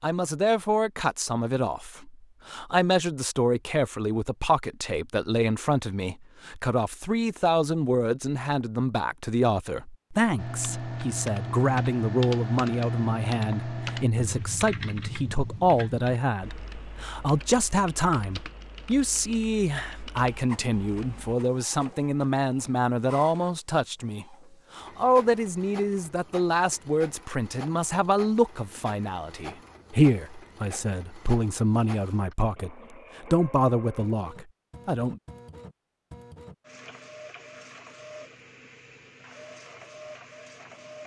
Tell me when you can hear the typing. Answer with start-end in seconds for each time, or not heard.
10.3-21.4.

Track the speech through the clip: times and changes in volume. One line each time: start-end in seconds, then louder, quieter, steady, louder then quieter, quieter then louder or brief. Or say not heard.
0.0-35.2 steady.